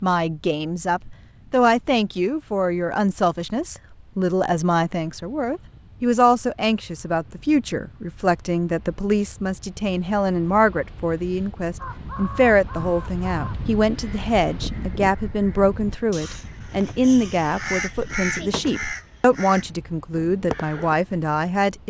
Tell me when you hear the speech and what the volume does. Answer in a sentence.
The speech can be heard from 0.0 to 21.8 s, at a steady volume.